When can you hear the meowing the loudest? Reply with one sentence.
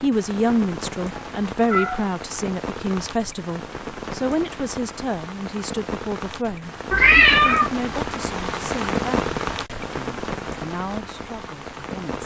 The loudest moment of the meowing is at 7 seconds.